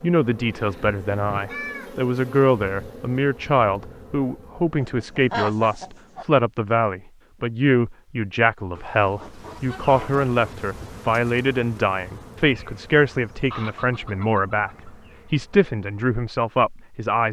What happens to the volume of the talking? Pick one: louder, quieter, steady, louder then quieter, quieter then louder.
steady.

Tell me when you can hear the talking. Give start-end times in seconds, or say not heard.
0.0-17.2.